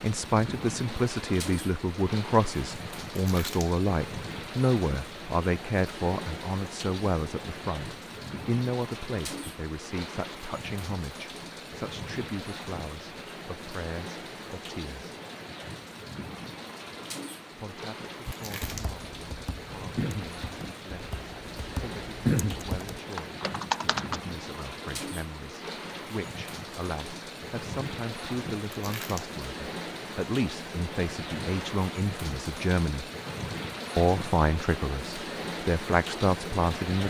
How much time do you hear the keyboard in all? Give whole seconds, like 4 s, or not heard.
6 s.